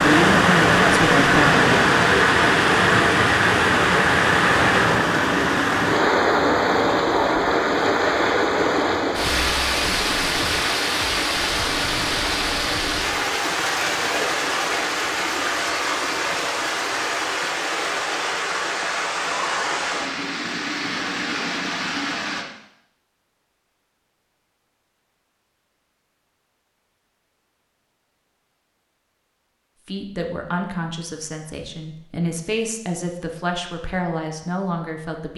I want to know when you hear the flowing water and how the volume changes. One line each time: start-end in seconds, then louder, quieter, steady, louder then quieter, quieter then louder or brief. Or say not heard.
0.0-22.4 quieter.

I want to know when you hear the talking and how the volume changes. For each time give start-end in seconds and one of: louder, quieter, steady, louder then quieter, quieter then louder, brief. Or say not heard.
0.0-1.8 brief
29.9-35.3 quieter then louder.